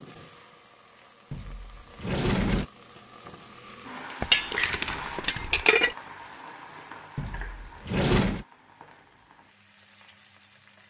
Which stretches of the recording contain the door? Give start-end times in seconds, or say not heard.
1.3-2.6, 7.2-8.4.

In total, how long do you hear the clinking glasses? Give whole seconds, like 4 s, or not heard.
2 s.